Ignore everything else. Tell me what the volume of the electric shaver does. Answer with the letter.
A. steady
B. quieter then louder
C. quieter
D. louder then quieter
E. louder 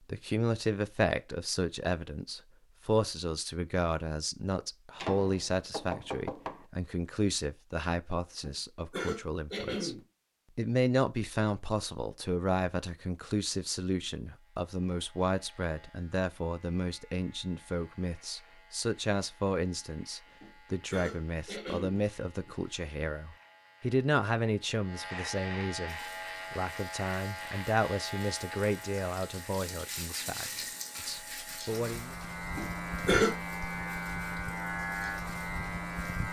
E.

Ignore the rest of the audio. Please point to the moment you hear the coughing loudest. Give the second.
33 s.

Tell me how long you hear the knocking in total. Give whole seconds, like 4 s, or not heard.
2 s.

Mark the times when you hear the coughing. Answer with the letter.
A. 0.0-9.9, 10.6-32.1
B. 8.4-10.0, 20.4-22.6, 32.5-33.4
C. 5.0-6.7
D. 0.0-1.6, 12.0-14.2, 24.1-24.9
B.